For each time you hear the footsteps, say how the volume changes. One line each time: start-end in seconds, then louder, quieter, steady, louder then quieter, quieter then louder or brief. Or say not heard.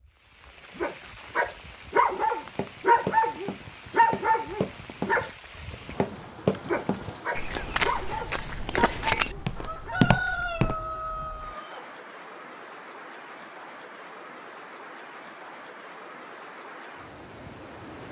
2.5-10.8 louder.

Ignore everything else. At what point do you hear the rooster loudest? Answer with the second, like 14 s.
10 s.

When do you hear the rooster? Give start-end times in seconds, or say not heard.
9.6-11.9.